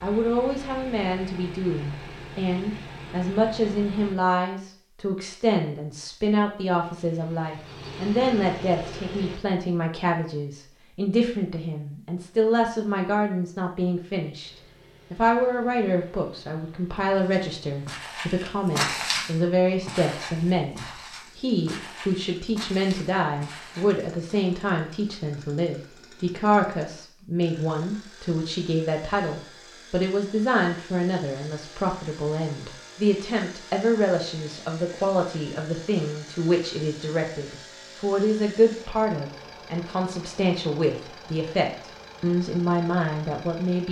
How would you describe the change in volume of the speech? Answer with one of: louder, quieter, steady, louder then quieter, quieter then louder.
steady.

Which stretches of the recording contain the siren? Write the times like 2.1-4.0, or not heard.
not heard.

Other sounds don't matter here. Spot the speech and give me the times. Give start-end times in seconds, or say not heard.
0.0-14.5, 15.1-43.8.